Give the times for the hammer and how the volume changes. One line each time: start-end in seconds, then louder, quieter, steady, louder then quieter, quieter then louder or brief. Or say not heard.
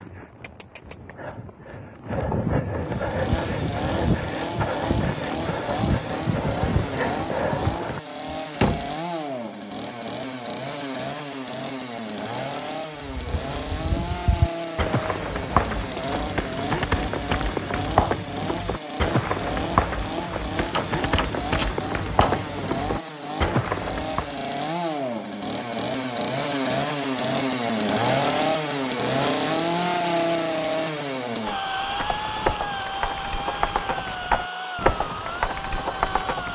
not heard.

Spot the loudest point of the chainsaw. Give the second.
28 s.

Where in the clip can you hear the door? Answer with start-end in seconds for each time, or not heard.
8.5-8.9, 20.7-22.4.